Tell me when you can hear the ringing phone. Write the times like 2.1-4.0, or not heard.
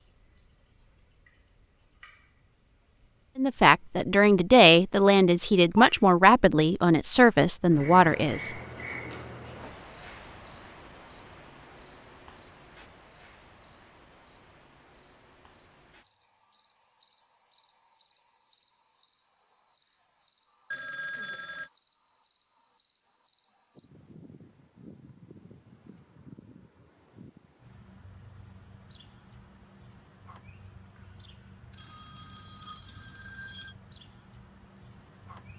5.5-6.0, 20.7-21.7, 31.7-33.8.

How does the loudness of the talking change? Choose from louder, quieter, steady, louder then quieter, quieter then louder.
steady.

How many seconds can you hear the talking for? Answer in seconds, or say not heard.
5 s.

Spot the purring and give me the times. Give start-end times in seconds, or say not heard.
not heard.